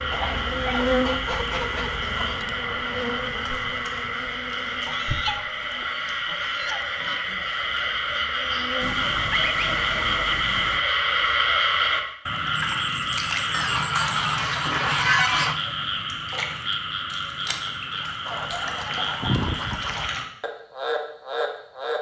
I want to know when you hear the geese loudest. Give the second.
15 s.